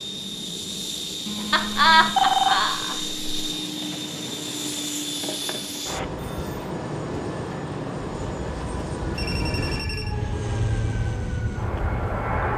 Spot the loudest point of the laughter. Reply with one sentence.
The volume of the laughter peaks at 2 seconds.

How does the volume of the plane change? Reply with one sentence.
The loudness of the plane stays about the same.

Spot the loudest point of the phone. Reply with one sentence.
The volume of the phone peaks at 2 seconds.